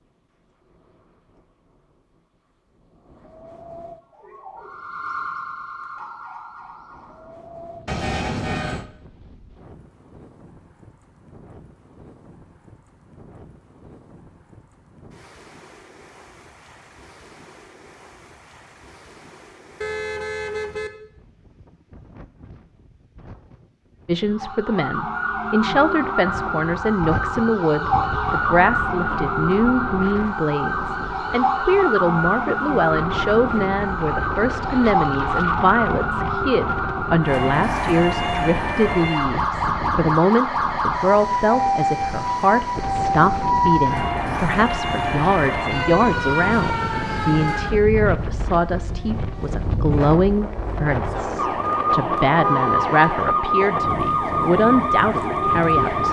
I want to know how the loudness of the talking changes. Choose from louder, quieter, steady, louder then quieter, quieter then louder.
steady.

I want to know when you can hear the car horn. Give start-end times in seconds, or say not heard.
7.8-8.8, 19.8-20.9, 52.4-53.0.